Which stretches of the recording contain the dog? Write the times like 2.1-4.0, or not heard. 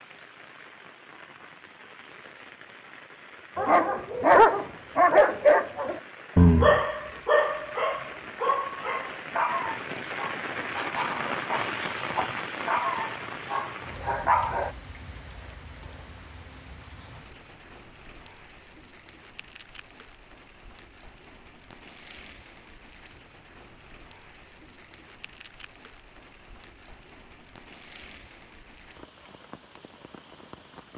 3.5-14.7.